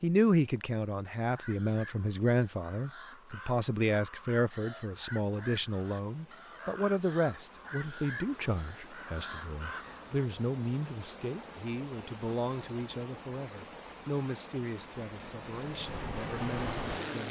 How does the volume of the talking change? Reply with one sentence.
The volume of the talking goes down.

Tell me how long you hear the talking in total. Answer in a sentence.
The talking can be heard for 17 seconds in total.